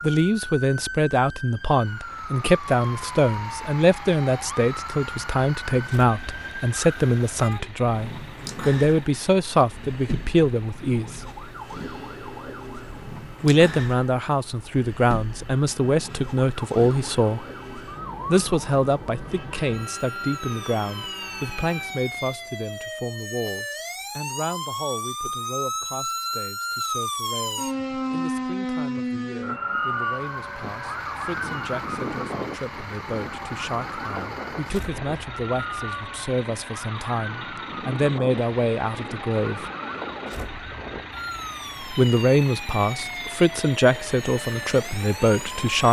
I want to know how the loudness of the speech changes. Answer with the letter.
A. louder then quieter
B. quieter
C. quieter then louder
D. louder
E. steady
C.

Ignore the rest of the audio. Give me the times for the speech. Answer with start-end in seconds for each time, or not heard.
0.0-11.2, 13.4-17.4, 18.2-39.6, 41.8-45.8.